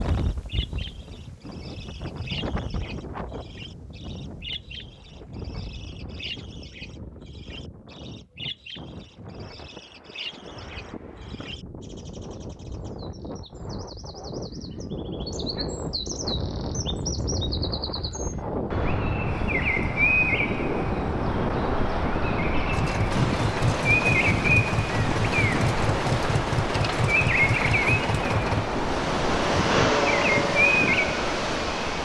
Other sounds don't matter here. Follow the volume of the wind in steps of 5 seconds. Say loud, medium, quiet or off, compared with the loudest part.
medium, quiet, medium, loud, loud, loud, loud.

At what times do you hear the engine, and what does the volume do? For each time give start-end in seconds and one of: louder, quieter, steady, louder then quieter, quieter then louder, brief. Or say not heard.
22.7-32.0 steady.